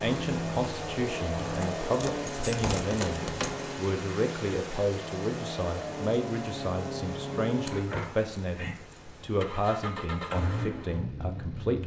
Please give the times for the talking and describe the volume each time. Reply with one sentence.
You can hear the talking from 0.0 to 11.8 s, at a steady volume.